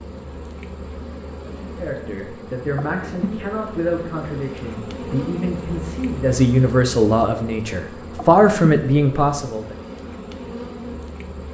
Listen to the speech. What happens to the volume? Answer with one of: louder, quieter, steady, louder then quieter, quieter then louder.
louder.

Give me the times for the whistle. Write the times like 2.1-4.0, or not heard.
not heard.